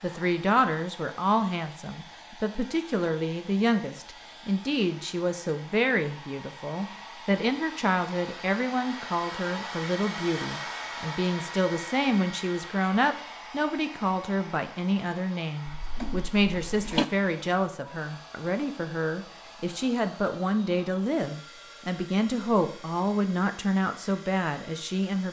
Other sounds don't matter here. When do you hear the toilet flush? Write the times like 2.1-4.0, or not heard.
15.7-17.1.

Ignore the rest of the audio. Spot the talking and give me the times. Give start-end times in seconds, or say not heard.
0.0-25.2.